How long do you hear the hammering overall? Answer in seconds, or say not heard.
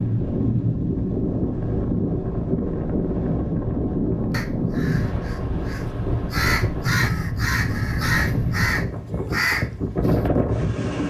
not heard.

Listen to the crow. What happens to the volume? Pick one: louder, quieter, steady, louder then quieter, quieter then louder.
louder.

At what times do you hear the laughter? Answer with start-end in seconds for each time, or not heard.
not heard.